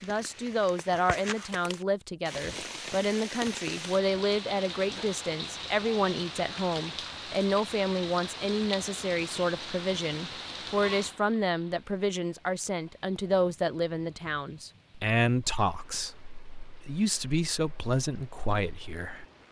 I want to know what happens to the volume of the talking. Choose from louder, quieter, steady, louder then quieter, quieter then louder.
steady.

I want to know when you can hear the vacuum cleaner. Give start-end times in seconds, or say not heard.
not heard.